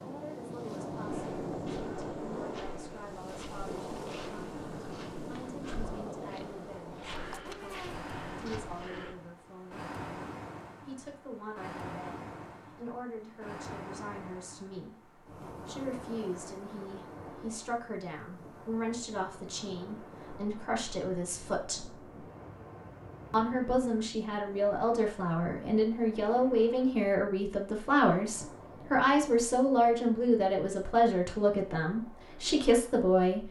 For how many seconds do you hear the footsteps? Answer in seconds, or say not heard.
8 s.